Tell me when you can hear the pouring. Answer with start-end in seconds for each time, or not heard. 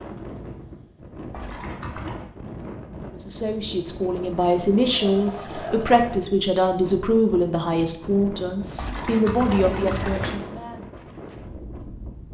1.3-2.3, 4.8-6.2, 8.8-10.5.